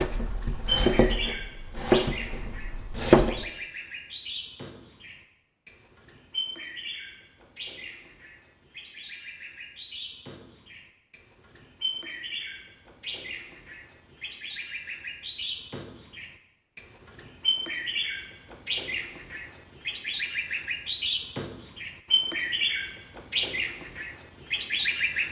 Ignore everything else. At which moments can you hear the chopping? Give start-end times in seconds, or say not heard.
0.0-3.5.